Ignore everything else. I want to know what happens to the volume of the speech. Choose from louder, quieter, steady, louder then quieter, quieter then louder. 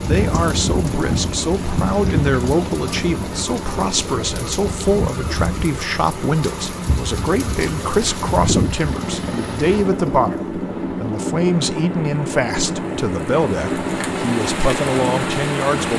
steady.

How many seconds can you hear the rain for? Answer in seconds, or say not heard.
16 s.